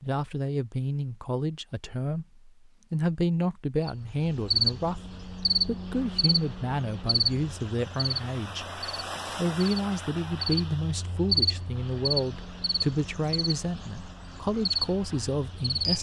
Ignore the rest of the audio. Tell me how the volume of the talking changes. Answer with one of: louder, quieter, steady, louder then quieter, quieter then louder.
steady.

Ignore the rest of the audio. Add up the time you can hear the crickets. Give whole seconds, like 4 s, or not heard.
12 s.